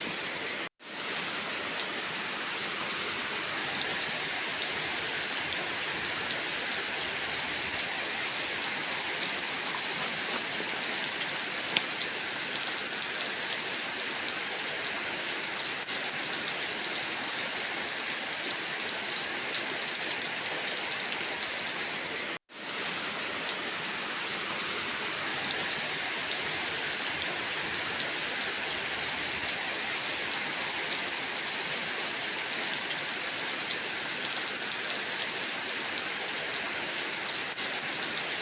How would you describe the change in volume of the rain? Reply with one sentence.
The loudness of the rain stays about the same.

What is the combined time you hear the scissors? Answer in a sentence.
The scissors can be heard for 3 seconds in total.